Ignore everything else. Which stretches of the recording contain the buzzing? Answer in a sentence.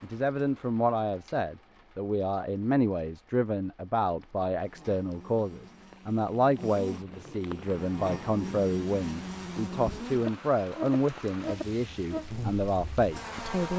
The buzzing can be heard from 4.6 to 13.7 s.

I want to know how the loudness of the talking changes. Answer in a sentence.
The volume of the talking stays about the same.